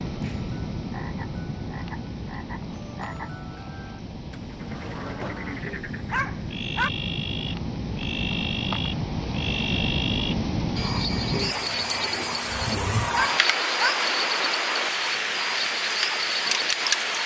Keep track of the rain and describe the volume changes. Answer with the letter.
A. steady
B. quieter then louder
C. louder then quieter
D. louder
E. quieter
D.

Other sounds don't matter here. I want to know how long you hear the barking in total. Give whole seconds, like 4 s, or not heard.
2 s.